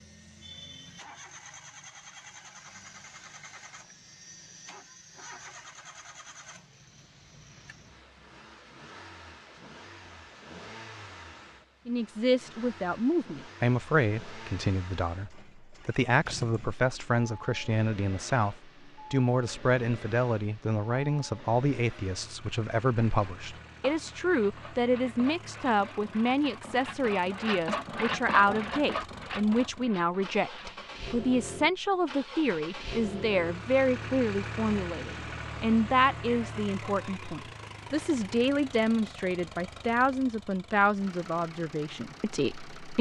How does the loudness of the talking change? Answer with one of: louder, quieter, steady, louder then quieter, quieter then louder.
steady.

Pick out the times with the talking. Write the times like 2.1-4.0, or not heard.
11.8-42.9.